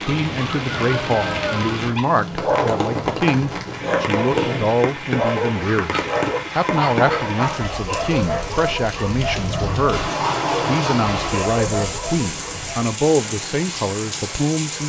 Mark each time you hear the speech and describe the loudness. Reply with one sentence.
The speech can be heard from 0.1 to 14.8 s, at a steady volume.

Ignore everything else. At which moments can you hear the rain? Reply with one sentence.
You can hear the rain from 0.0 to 14.8 s.